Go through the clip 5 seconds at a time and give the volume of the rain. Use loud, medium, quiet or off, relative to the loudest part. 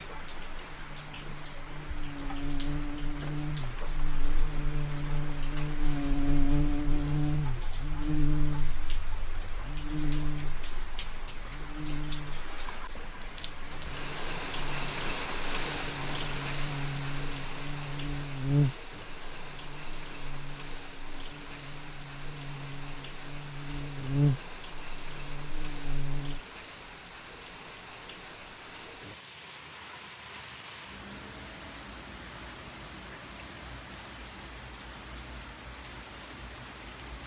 medium, medium, loud, loud, medium, medium, medium, medium.